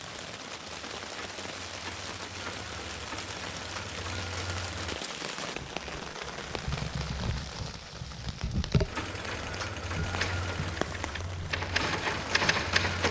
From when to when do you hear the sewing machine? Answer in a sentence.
The sewing machine can be heard from 0.0 to 5.0 s and from 8.8 to 13.0 s.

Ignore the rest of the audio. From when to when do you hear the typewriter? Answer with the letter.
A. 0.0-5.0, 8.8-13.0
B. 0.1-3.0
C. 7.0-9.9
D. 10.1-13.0
D.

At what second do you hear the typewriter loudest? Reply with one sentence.
The volume of the typewriter peaks at 13 seconds.